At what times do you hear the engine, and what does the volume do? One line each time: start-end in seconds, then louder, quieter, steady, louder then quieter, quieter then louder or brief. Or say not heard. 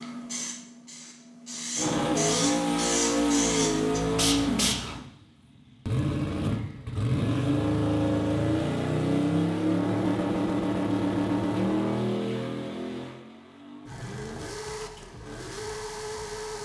1.8-16.6 quieter.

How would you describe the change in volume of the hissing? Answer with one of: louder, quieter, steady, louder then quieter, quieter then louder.
louder.